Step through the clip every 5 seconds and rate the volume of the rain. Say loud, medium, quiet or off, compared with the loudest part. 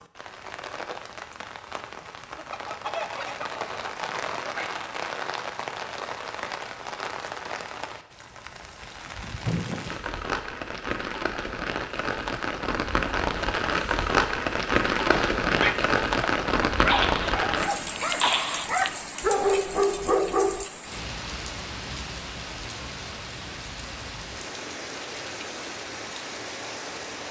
medium, medium, loud, loud, medium, medium.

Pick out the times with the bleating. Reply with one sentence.
The bleating can't be heard in this clip.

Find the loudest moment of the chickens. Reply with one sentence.
The loudest moment of the chickens is at 3 seconds.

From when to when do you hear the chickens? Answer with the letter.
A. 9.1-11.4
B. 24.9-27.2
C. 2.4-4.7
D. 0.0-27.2
C.